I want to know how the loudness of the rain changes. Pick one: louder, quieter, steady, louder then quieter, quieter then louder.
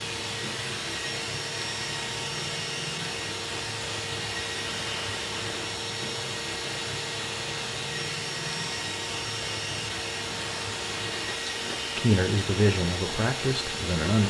steady.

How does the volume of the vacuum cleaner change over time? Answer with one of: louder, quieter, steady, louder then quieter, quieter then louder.
steady.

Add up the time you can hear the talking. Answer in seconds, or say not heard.
2 s.